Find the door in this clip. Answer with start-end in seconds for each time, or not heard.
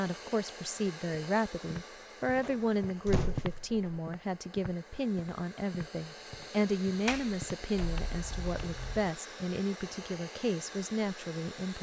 2.4-4.0, 7.0-9.0.